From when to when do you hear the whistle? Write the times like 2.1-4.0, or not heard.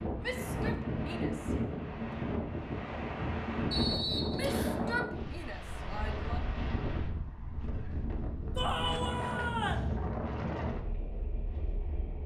3.7-4.8.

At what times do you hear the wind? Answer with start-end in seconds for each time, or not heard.
0.0-12.2.